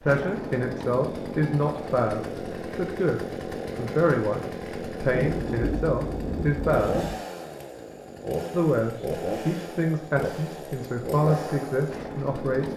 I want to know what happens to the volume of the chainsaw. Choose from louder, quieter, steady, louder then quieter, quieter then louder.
steady.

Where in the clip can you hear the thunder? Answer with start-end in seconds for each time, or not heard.
5.1-7.2.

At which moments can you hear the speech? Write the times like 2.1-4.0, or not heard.
0.0-7.0, 8.5-12.7.